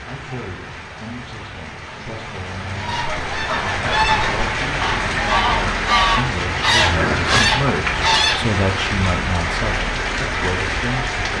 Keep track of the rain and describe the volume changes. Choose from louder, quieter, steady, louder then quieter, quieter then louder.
louder.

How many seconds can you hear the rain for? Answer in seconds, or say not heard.
11 s.